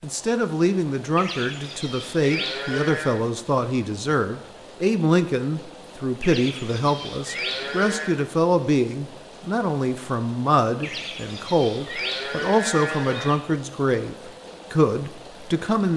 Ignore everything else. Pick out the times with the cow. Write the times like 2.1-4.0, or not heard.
1.1-3.2, 6.2-8.1, 10.8-13.4.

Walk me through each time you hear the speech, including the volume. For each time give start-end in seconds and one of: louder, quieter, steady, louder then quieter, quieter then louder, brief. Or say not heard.
0.0-15.9 steady.